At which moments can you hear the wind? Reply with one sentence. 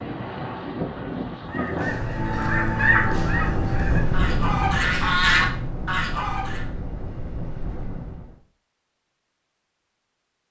The wind can be heard from 0.0 to 8.4 s.